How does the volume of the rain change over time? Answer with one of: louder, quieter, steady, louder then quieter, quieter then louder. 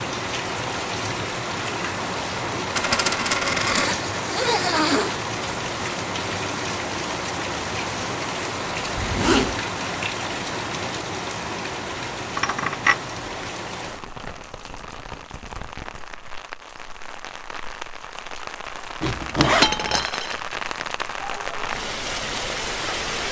quieter then louder.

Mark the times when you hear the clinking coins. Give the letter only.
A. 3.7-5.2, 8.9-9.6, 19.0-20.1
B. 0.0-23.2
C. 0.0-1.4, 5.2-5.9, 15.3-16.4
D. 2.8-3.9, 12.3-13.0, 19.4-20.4
D.